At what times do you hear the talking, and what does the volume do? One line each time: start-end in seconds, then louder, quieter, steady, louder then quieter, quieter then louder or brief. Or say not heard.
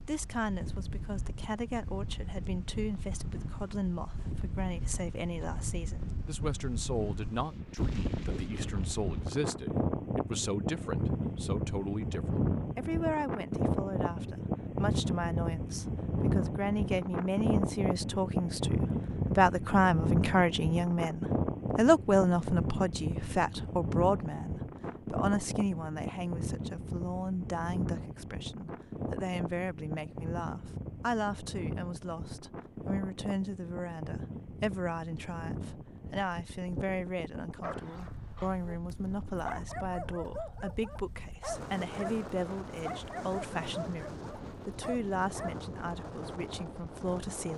0.1-47.5 louder then quieter.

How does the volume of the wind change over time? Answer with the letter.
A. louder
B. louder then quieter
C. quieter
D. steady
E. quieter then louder
B.